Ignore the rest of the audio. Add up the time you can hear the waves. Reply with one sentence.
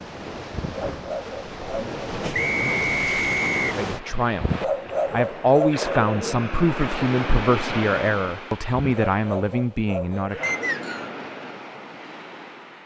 You can hear the waves for 13 seconds altogether.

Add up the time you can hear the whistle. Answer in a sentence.
You can hear the whistle for 2 seconds altogether.